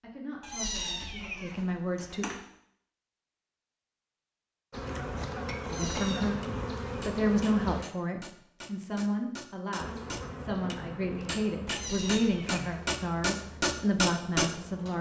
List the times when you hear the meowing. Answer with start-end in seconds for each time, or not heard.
0.4-2.4, 5.6-6.3, 11.7-13.0.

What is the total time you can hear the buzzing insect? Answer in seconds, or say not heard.
8 s.